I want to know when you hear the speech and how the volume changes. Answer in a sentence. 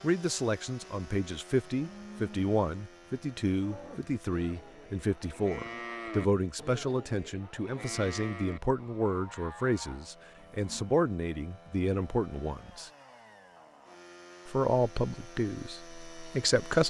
The speech can be heard from 0.0 to 12.9 s, at a steady volume; and briefly from 14.4 to 16.8 s.